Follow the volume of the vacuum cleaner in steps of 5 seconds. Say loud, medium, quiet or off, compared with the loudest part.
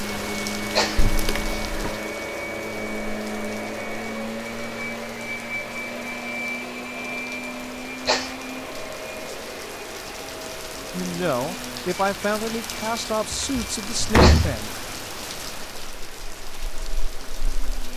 loud, loud, medium, quiet.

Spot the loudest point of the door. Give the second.
14 s.